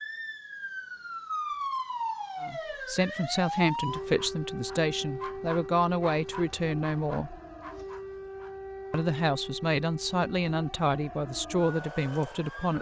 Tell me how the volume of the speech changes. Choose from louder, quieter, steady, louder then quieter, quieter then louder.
steady.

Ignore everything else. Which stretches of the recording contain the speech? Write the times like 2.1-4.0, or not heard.
2.4-7.4, 8.9-12.7.